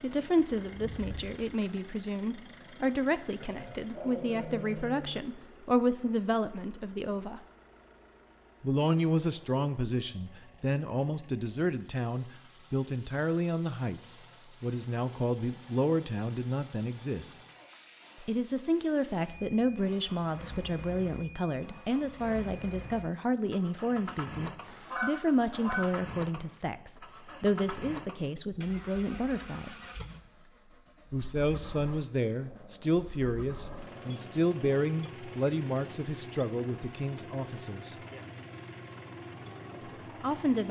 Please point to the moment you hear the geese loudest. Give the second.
25 s.